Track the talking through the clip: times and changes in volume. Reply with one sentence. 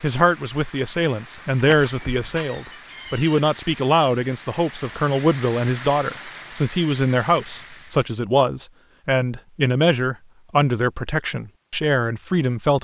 The talking can be heard from 0.0 to 12.7 s, at a steady volume.